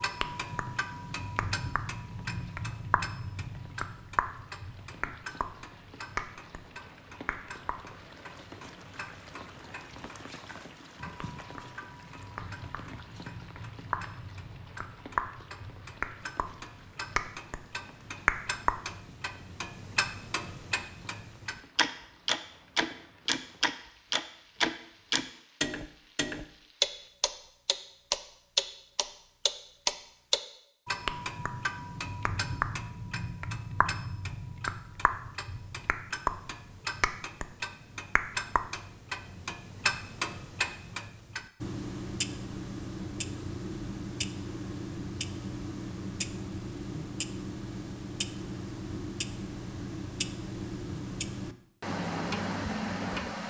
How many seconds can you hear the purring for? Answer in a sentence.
You can't hear the purring here.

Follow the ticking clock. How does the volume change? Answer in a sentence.
The volume of the ticking clock goes up, then down.